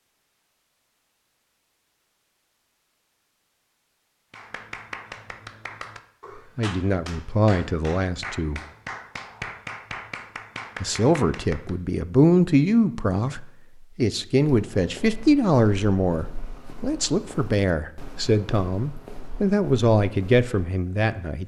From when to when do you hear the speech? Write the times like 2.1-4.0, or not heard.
6.5-8.6, 10.8-21.4.